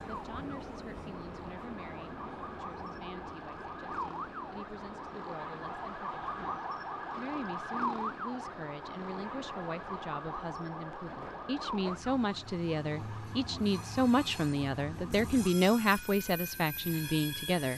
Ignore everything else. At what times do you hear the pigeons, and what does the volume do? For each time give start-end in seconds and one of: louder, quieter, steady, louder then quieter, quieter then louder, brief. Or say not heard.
not heard.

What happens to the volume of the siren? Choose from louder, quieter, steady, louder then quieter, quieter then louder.
louder then quieter.